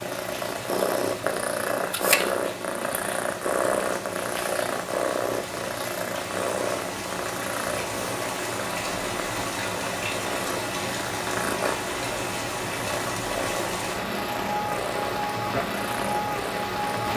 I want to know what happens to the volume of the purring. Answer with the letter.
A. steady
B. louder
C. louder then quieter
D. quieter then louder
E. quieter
E.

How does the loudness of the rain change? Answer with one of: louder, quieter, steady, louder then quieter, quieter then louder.
louder.